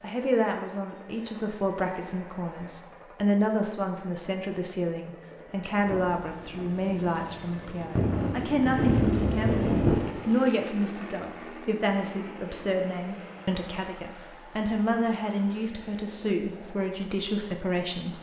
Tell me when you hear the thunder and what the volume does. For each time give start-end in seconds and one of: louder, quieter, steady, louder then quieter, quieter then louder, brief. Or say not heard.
5.8-10.0 louder.